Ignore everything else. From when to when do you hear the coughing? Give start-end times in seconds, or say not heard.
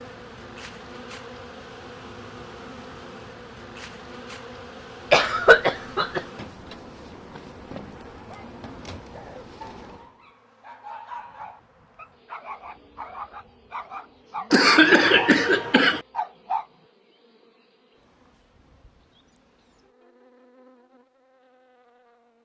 5.1-6.2, 14.5-16.0.